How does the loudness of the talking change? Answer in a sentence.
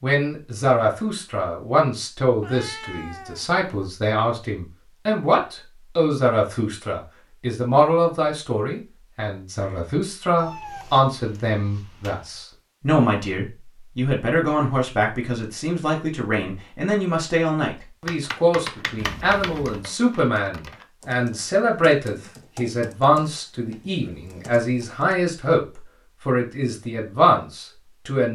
The loudness of the talking stays about the same.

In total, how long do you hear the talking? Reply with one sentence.
You can hear the talking for 28 seconds altogether.